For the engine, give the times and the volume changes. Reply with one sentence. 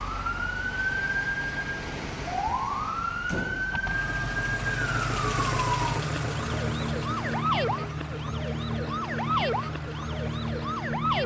You can hear the engine from 3.7 to 11.2 s, getting quieter.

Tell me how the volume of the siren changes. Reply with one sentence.
The loudness of the siren stays about the same.